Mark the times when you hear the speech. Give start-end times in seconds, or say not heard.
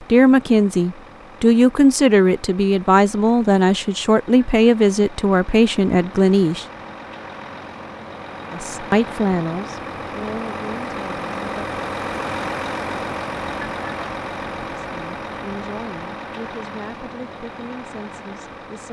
0.1-6.7, 8.5-11.4, 14.8-18.8.